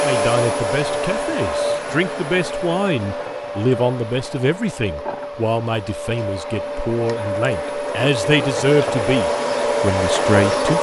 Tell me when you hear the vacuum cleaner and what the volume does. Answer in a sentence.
You can hear the vacuum cleaner from 0.0 to 10.7 s, getting quieter then louder.